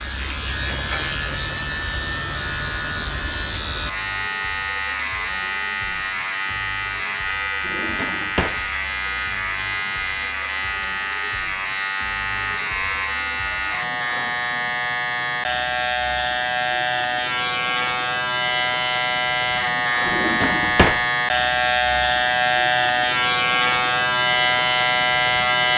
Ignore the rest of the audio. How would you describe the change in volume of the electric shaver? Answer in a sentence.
The loudness of the electric shaver goes up.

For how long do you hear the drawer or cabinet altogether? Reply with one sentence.
The drawer or cabinet can be heard for 2 seconds in total.